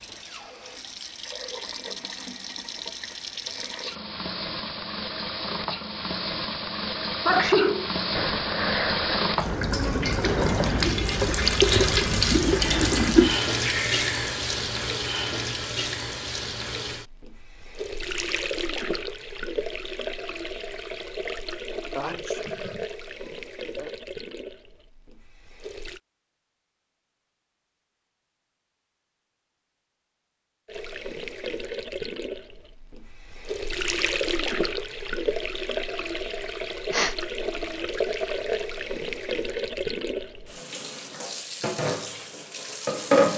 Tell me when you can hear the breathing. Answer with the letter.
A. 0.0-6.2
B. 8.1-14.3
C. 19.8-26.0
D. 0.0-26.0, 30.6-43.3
B.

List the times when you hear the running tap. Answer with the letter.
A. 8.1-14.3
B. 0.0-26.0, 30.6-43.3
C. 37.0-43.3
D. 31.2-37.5
B.